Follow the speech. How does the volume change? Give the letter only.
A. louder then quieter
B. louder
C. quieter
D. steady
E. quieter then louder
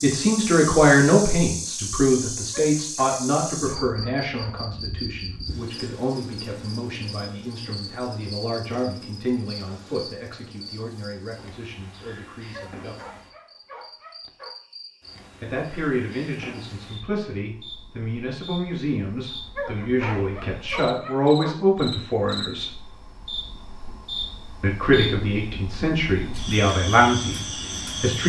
E.